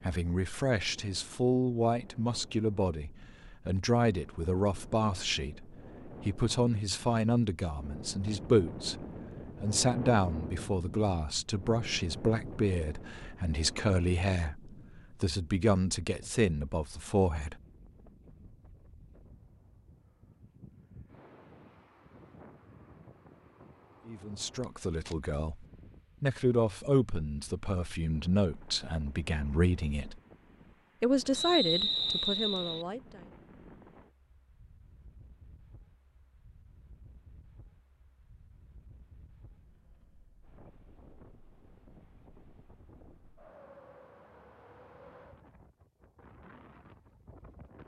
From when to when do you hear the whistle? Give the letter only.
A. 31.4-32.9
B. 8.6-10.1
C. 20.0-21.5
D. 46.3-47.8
A.